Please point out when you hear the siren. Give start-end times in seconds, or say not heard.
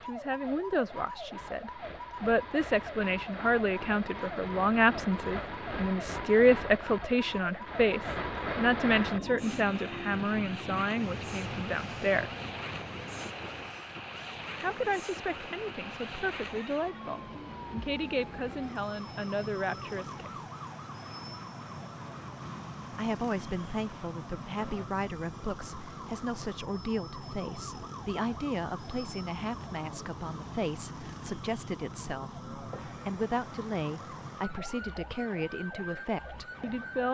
0.0-37.0.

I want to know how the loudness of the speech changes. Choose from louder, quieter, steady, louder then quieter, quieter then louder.
quieter.